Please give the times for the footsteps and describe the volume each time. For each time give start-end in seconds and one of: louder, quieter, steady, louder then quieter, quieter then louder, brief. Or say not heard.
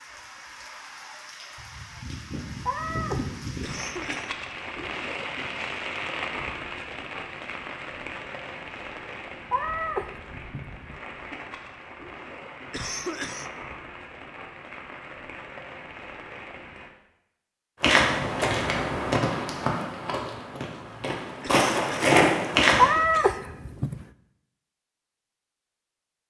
17.8-22.9 quieter then louder.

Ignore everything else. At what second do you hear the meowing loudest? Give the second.
23 s.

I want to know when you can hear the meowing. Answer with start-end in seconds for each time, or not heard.
2.6-4.0, 9.5-10.9, 22.8-24.1.